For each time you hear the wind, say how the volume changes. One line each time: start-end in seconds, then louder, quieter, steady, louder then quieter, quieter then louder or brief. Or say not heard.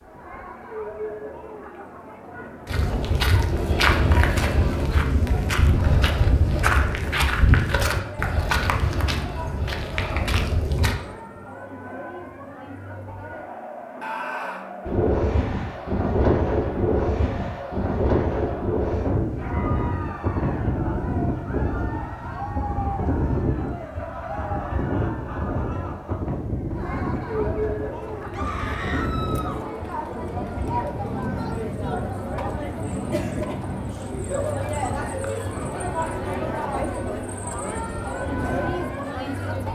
14.8-39.7 quieter.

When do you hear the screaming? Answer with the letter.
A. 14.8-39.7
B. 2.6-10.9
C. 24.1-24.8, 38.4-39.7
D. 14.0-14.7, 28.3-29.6
D.